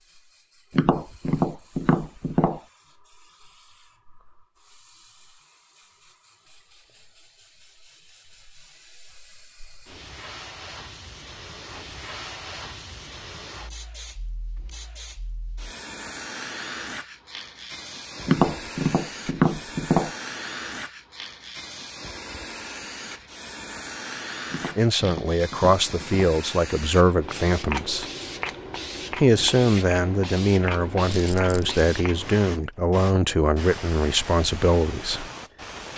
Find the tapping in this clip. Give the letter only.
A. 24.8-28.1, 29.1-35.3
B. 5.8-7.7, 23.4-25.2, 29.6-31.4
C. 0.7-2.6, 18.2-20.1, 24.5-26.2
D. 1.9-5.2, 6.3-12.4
C.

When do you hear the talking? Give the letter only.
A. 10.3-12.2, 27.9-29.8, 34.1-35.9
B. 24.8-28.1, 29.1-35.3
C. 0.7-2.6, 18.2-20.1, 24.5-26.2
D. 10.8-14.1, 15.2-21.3
B.